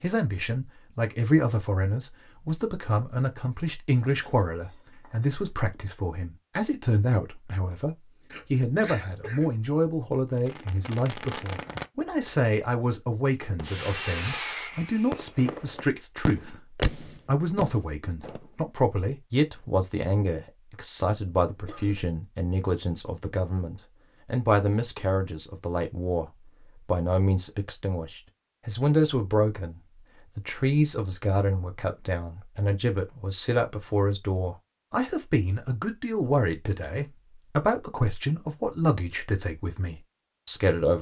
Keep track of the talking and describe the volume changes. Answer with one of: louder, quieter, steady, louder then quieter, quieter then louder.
steady.